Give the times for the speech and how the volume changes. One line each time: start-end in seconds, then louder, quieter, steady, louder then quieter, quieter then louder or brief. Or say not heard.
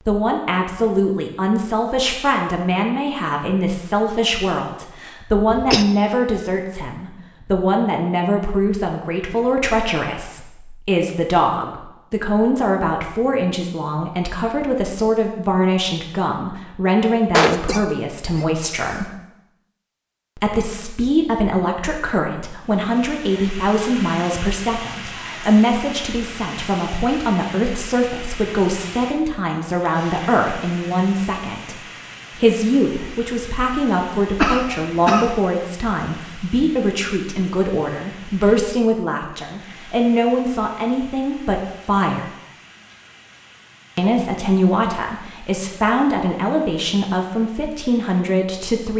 0.1-19.1 steady
20.4-42.3 steady
44.0-48.9 steady.